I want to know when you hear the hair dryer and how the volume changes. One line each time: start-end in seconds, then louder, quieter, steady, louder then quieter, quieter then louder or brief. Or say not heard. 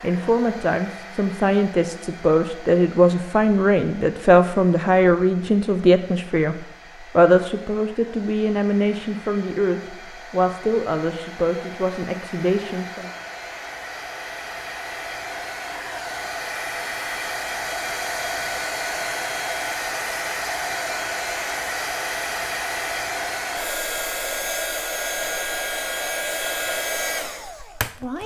0.0-28.2 louder.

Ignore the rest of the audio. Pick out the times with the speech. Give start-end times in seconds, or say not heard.
0.0-13.1.